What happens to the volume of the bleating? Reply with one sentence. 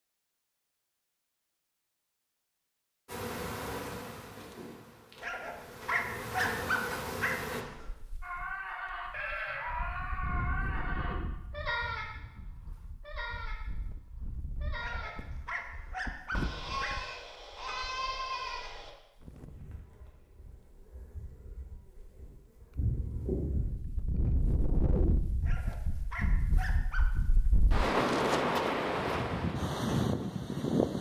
The volume of the bleating goes down, then up.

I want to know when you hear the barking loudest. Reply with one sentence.
The volume of the barking peaks at 7 seconds.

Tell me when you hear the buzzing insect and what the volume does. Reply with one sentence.
The buzzing insect can be heard from 3.0 to 7.7 s, getting quieter then louder; and from 19.4 to 23.7 s, getting louder.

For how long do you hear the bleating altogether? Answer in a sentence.
The bleating can be heard for 11 seconds in total.